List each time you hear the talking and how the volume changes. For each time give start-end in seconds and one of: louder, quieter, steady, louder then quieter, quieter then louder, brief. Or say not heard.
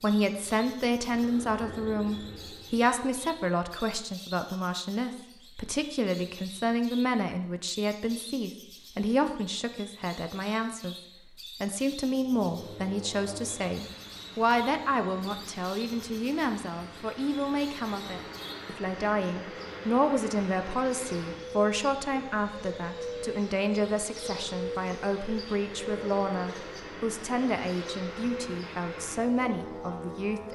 0.0-10.9 steady
11.6-30.4 steady.